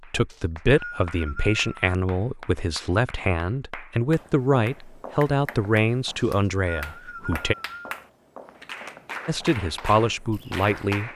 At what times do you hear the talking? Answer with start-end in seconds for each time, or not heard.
0.1-7.5, 9.2-11.1.